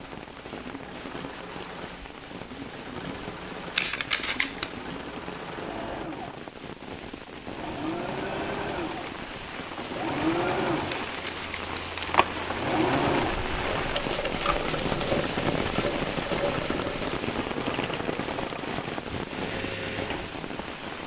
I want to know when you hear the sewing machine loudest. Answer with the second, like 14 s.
13 s.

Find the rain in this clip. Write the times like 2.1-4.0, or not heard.
0.0-21.0.